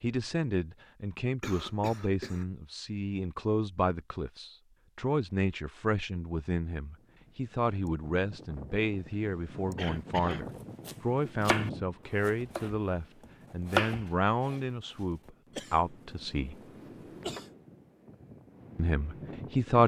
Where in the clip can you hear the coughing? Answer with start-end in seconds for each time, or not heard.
1.4-2.5, 9.8-10.4, 15.5-17.6.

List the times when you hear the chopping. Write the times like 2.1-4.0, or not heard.
10.2-15.3.